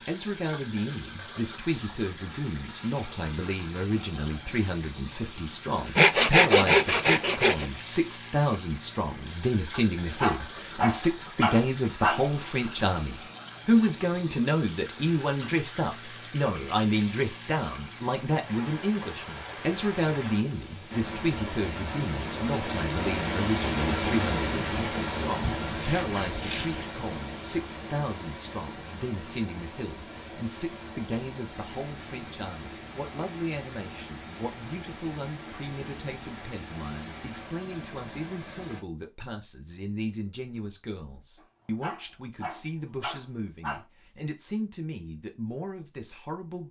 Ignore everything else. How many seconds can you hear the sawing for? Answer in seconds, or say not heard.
3 s.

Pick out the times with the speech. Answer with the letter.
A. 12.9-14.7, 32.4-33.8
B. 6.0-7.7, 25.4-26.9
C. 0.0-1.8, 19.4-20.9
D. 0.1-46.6
D.